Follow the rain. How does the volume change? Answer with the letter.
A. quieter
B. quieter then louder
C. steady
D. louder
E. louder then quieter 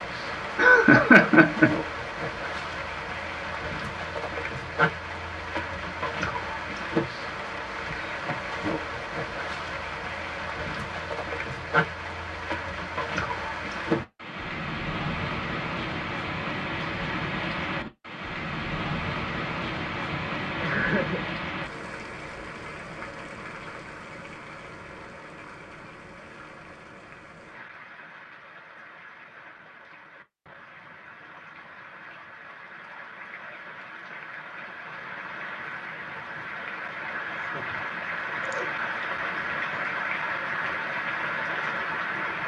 B.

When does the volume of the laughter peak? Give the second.
1 s.